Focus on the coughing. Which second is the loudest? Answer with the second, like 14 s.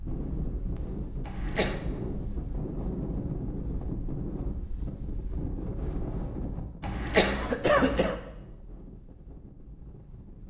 8 s.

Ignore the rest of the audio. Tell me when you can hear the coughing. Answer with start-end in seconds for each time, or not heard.
1.2-1.9, 6.8-8.2.